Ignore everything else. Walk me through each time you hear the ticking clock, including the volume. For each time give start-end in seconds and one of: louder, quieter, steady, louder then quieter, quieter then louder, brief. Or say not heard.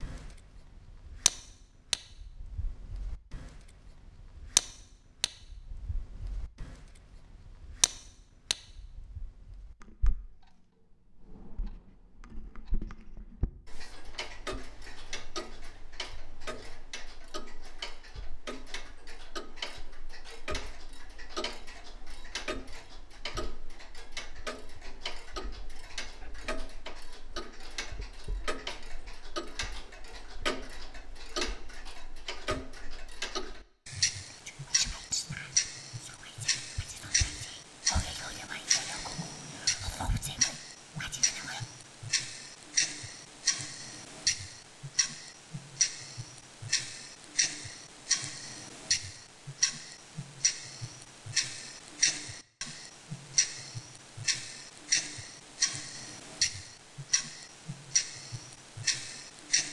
0.0-59.6 quieter then louder.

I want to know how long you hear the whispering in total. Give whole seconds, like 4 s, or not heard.
7 s.